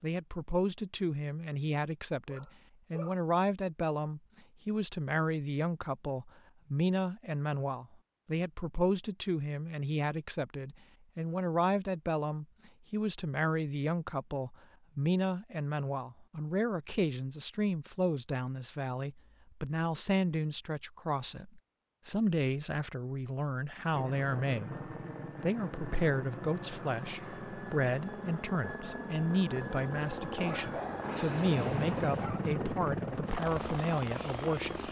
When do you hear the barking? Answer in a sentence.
You can hear the barking from 2.2 to 3.2 s and from 30.4 to 32.4 s.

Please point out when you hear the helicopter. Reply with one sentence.
You can hear the helicopter from 23.9 to 34.8 s.